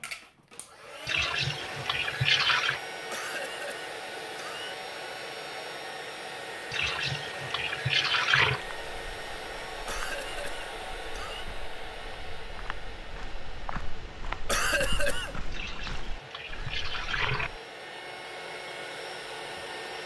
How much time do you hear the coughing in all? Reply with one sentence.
The coughing can be heard for 4 seconds in total.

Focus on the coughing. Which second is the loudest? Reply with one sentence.
The volume of the coughing peaks at 15 seconds.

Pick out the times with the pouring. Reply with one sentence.
You can hear the pouring from 1.1 to 2.8 s, from 6.7 to 8.6 s and from 15.5 to 17.5 s.